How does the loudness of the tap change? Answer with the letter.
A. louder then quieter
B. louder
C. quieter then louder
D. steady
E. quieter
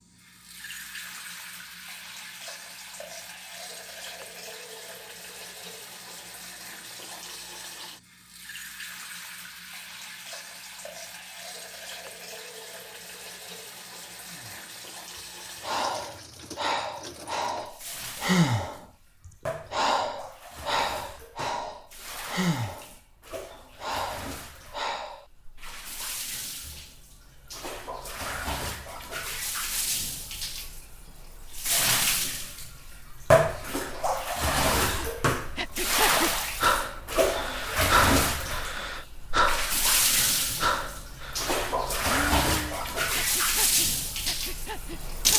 B.